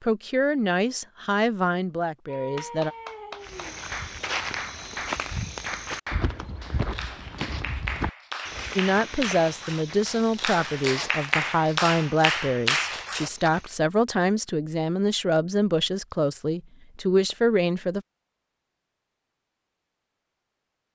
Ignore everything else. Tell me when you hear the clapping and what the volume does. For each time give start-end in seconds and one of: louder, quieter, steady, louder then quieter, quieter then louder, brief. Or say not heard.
2.2-13.5 louder.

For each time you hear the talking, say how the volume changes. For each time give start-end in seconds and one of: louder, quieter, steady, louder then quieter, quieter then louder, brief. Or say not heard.
0.0-2.9 brief
8.8-18.1 steady.